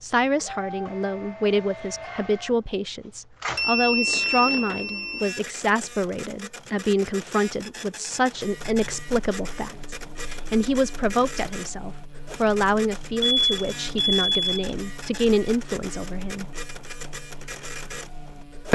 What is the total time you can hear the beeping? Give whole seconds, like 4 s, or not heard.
3 s.